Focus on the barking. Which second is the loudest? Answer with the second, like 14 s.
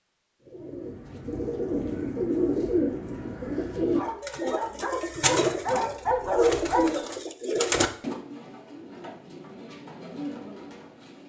6 s.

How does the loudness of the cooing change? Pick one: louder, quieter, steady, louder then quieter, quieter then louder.
quieter.